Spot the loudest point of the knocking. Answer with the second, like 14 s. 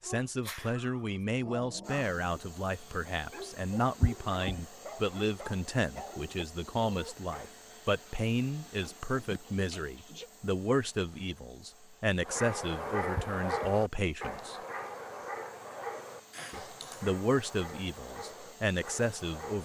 4 s.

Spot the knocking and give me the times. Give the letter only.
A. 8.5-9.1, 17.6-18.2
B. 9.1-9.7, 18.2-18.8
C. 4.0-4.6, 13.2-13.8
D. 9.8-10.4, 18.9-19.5
C.